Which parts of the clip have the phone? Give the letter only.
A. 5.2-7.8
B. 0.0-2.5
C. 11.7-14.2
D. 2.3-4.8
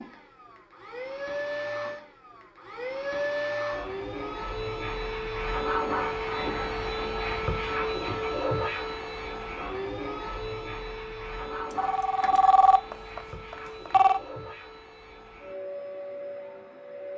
C.